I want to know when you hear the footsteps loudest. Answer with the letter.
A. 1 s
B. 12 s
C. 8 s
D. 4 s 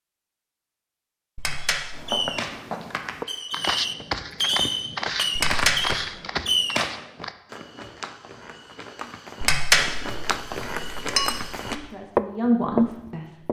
B.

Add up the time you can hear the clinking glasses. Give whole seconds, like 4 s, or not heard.
4 s.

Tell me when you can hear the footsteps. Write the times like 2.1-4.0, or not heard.
1.9-13.4.